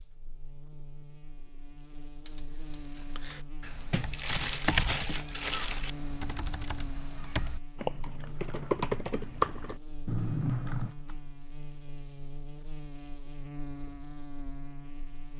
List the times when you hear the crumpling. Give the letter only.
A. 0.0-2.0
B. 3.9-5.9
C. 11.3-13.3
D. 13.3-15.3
B.